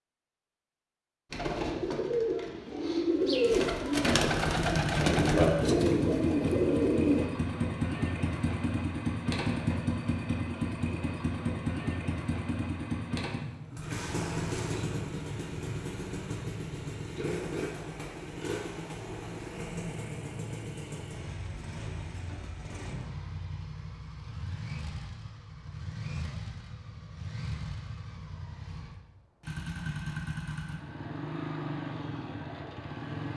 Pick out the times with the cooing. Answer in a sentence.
The cooing can be heard from 1.3 to 7.3 s.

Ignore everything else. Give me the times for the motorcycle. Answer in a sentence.
You can hear the motorcycle from 4.3 to 33.3 s.